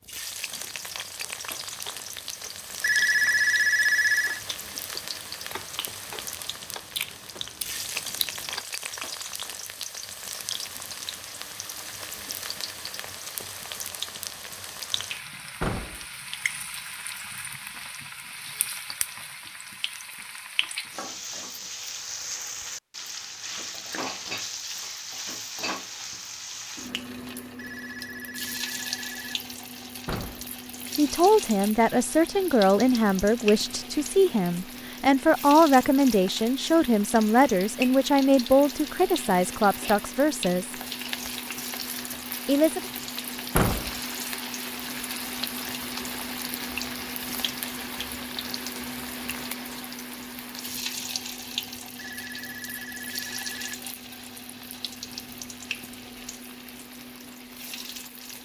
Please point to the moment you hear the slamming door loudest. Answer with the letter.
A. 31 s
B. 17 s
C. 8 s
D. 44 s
D.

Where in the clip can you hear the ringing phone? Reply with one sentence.
You can hear the ringing phone from 2.8 to 4.4 s, from 27.6 to 29.2 s and from 52.0 to 53.8 s.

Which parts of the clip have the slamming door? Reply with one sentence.
The slamming door can be heard from 15.6 to 16.1 s, from 30.1 to 30.5 s and from 43.5 to 44.0 s.